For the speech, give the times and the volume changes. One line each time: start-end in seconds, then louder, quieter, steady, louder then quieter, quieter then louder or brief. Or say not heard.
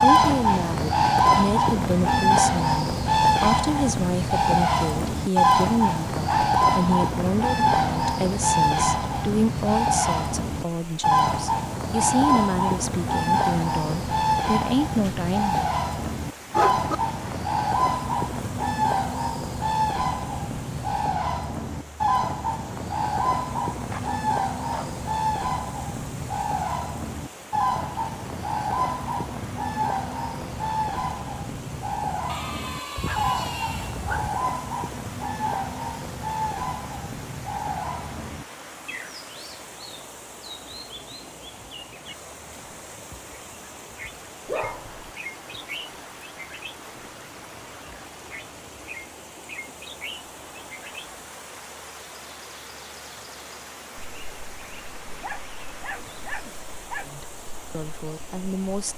0.0-15.7 steady
57.0-58.9 brief.